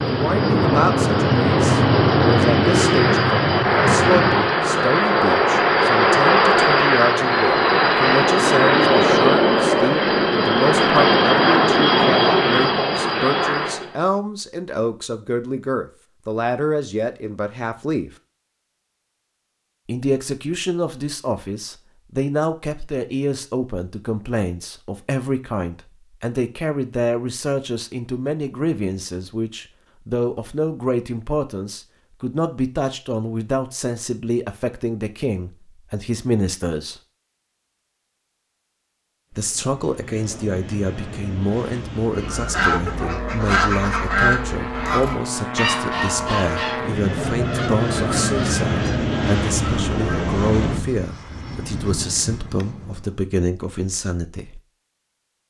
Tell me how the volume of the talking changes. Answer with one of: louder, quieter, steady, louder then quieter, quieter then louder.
steady.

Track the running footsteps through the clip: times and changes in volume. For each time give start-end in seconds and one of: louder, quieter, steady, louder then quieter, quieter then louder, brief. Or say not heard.
not heard.